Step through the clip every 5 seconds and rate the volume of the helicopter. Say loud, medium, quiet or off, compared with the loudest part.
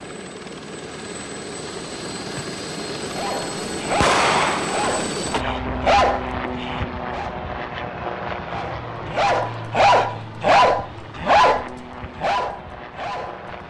loud, loud, medium.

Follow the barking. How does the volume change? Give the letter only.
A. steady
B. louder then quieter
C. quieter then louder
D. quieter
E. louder
B.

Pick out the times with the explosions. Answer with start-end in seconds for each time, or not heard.
4.0-4.9.